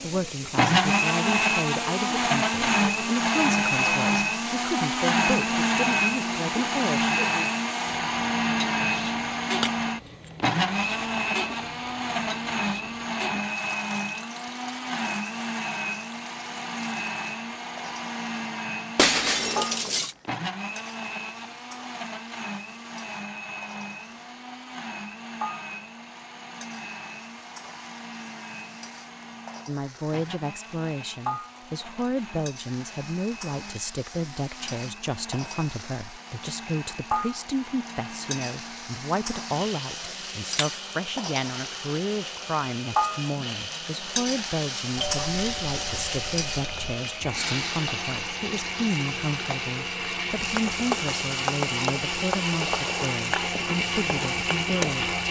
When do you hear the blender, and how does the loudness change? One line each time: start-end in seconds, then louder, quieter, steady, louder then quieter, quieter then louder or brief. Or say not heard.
0.1-55.2 quieter then louder.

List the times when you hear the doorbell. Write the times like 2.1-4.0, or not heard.
45.0-47.0.